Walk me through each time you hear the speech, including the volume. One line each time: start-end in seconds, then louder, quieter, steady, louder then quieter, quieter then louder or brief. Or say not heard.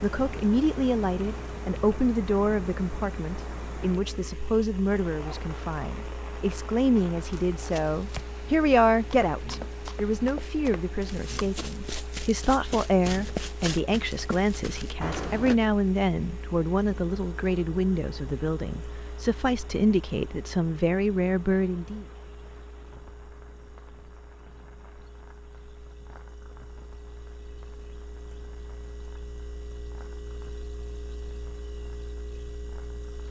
0.0-22.1 steady.